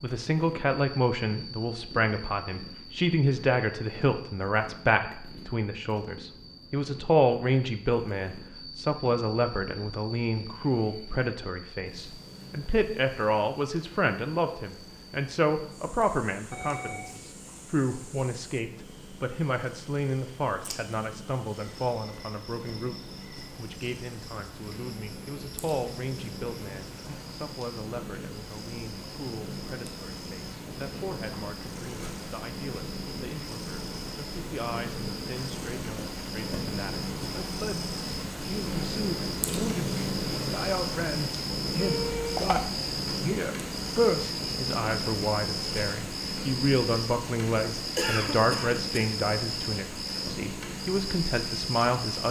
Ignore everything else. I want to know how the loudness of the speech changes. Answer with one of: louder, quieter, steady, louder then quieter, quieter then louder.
quieter then louder.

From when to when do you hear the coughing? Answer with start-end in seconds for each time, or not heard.
48.0-49.1.